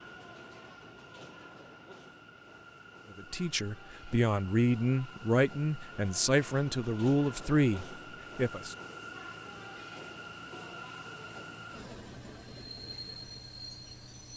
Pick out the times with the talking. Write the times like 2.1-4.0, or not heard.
3.1-8.8.